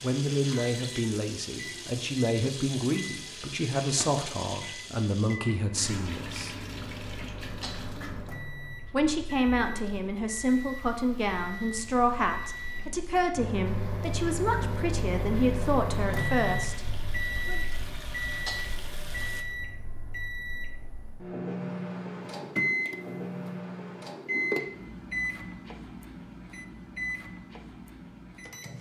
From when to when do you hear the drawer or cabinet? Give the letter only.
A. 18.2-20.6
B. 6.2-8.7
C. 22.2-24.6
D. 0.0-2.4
C.